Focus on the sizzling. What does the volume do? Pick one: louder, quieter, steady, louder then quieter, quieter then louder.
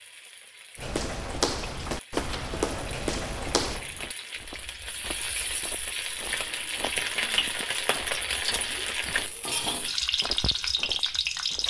louder.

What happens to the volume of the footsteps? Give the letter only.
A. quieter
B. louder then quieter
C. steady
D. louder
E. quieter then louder
A.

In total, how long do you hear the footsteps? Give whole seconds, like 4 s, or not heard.
11 s.